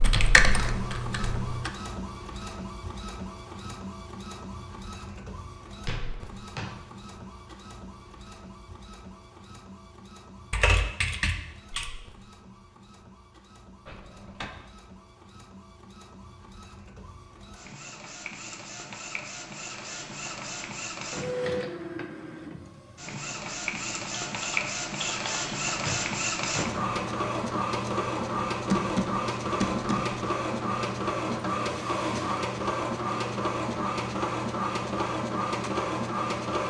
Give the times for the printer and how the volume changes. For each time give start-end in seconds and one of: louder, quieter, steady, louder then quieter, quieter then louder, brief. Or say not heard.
0.0-36.6 quieter then louder.